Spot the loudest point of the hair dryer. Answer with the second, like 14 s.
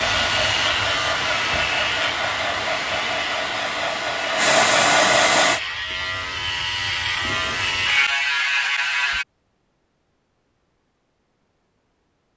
5 s.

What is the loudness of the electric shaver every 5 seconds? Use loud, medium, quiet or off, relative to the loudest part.
loud, loud, off.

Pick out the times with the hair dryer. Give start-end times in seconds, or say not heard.
0.0-5.6.